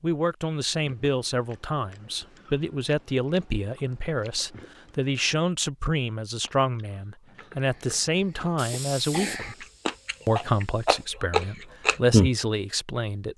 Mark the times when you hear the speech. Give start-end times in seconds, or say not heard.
0.0-9.7, 10.2-13.3.